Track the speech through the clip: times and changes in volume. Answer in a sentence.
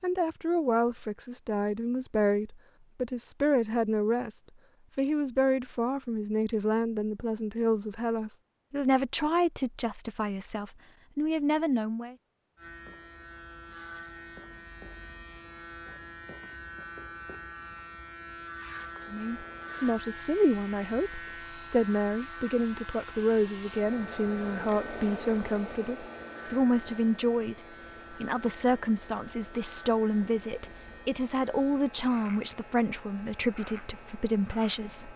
The speech can be heard from 0.0 to 12.2 s, at a steady volume; and from 19.1 to 35.1 s, at a steady volume.